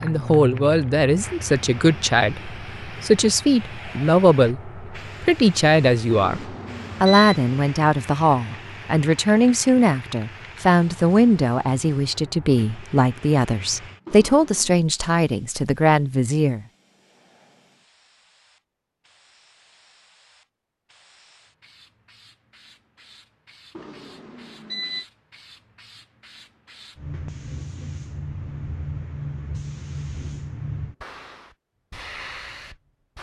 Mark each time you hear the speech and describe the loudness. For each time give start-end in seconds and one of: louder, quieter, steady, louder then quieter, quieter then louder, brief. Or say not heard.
0.0-16.6 steady.